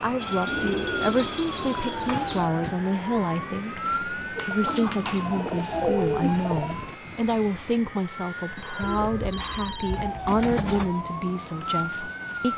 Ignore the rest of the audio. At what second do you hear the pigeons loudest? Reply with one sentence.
The volume of the pigeons peaks at 6 seconds.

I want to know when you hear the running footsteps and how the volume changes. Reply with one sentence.
You can't hear the running footsteps here.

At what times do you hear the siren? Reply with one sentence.
The siren can be heard from 0.0 to 12.5 s.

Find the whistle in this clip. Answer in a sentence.
You can't hear the whistle here.